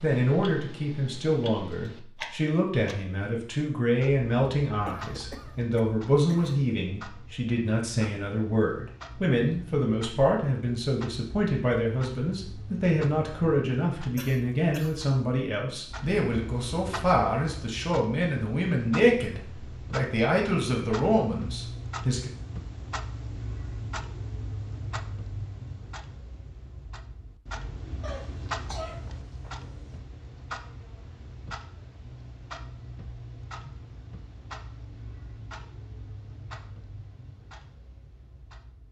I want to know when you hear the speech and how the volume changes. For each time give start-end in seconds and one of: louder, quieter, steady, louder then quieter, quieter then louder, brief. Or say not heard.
0.0-22.3 steady.